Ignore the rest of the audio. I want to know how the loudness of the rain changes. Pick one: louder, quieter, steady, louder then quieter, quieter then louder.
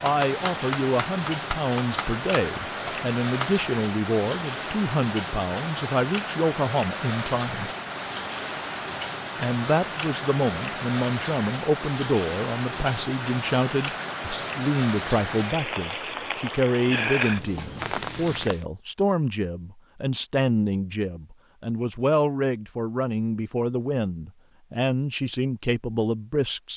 steady.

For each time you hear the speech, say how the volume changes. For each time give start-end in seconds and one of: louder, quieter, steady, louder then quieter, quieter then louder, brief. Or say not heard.
0.0-7.7 steady
9.3-26.7 steady.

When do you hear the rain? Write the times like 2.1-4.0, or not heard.
0.0-18.6.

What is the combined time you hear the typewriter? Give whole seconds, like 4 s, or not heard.
4 s.